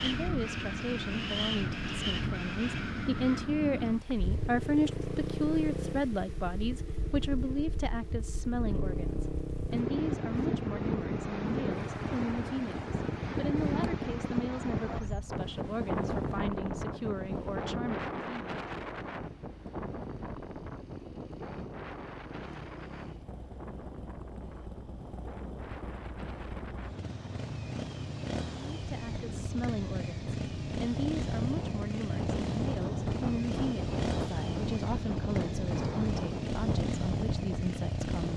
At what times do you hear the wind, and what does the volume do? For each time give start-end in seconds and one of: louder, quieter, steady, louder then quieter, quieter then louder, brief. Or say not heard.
0.0-38.3 quieter then louder.